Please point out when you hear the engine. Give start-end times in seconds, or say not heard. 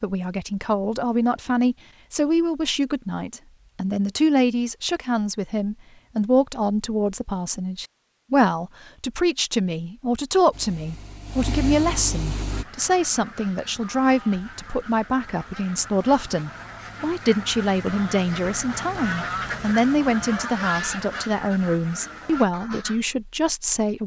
10.5-12.7.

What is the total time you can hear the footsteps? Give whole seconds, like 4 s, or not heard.
not heard.